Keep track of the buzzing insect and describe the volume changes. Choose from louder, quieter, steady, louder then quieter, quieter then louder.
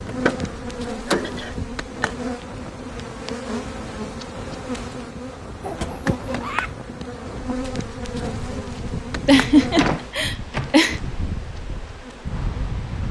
quieter.